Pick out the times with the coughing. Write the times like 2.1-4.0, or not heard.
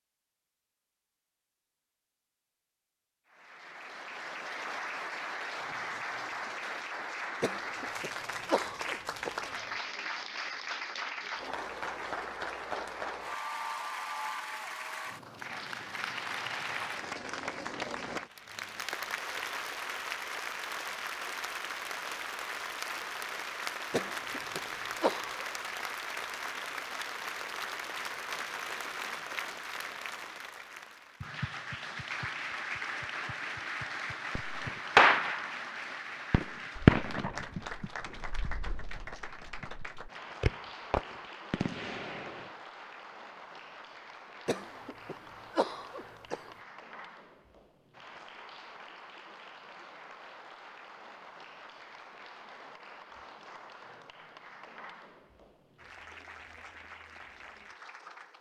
7.4-9.5, 23.9-25.4, 44.5-46.5.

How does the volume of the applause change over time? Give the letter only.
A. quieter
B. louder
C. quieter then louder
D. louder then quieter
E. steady
A.